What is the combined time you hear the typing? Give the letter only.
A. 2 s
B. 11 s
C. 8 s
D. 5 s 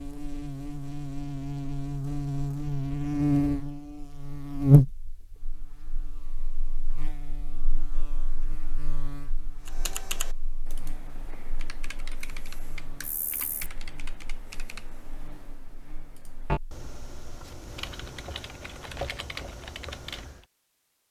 B.